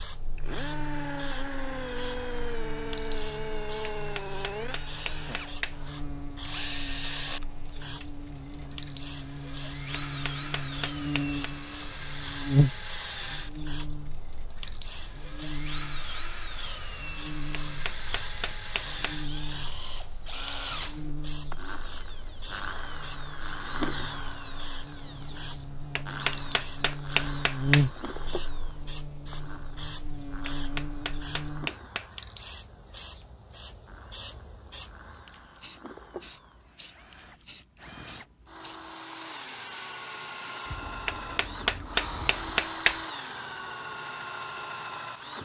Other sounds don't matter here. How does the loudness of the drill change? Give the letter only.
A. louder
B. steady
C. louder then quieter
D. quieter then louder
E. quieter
D.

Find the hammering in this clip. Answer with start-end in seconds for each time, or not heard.
4.0-5.8, 10.1-11.3, 17.6-19.1, 25.9-27.9, 30.4-32.1, 41.0-43.0.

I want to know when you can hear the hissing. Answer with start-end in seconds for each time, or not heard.
0.0-45.4.